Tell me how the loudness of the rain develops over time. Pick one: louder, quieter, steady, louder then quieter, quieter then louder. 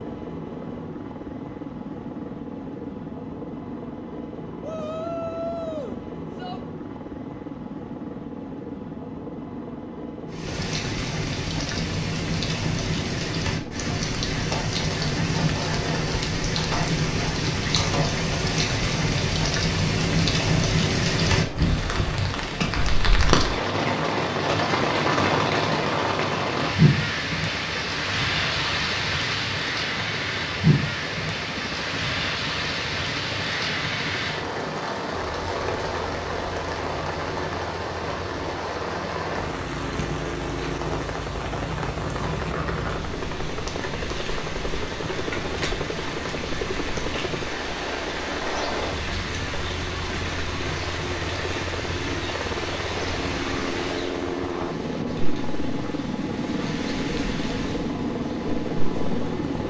quieter.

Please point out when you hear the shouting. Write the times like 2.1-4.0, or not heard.
4.6-6.6.